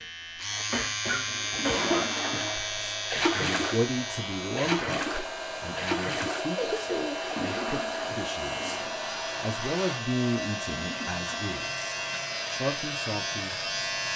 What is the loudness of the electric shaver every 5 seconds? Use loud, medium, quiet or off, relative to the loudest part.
loud, medium, loud.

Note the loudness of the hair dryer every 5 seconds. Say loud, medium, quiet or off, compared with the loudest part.
medium, loud, medium.